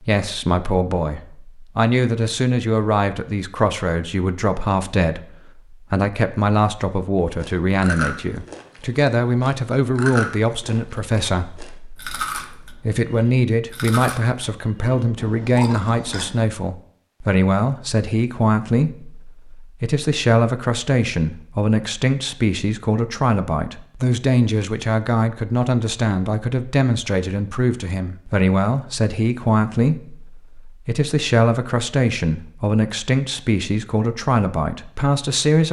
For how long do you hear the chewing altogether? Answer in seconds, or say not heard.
9 s.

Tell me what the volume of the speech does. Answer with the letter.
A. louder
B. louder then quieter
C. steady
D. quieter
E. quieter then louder
C.